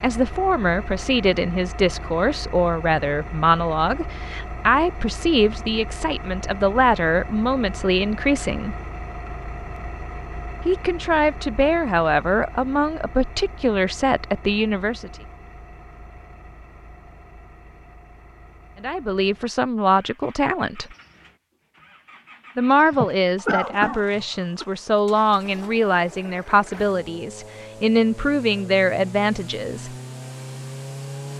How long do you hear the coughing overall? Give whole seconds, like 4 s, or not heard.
2 s.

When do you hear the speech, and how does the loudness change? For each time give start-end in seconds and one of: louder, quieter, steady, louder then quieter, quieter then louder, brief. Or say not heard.
0.0-8.8 steady
10.7-15.1 steady
18.8-20.9 brief
22.6-29.9 steady.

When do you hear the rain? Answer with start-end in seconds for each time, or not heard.
not heard.